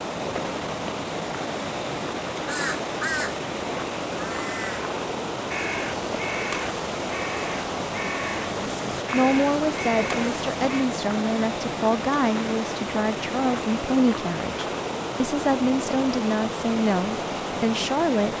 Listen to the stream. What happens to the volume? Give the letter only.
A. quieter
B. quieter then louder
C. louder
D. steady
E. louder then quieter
D.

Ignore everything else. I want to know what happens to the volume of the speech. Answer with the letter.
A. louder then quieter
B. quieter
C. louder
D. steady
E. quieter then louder
D.